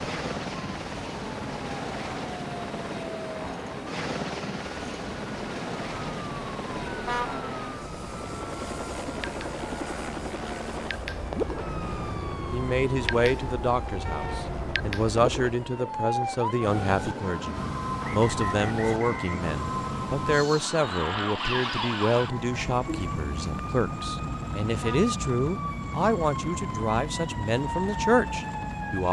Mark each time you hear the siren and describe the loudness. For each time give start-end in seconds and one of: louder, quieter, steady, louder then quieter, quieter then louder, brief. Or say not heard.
0.0-29.0 louder.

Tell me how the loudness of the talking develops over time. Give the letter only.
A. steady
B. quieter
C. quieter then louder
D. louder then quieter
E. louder
A.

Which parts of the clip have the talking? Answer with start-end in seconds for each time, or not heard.
12.5-29.0.